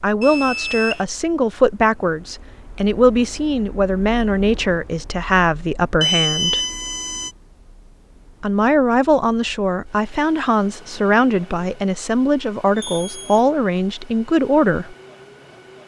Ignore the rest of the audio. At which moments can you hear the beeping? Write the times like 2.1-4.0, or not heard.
0.2-1.1, 6.0-7.3, 12.8-13.4.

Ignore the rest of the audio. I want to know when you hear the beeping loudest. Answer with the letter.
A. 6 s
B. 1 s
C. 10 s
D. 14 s
A.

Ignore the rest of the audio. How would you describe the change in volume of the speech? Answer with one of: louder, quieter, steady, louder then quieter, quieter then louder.
steady.